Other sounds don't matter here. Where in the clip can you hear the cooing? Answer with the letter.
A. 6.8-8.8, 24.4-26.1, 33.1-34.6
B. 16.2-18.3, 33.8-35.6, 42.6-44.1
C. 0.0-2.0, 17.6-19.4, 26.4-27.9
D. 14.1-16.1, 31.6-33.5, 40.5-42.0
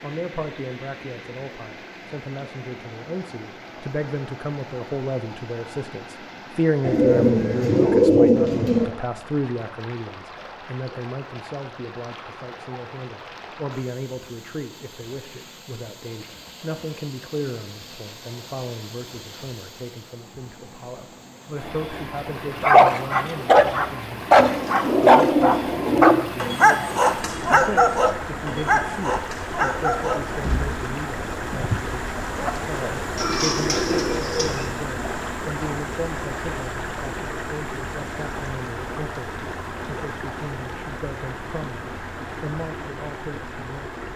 A.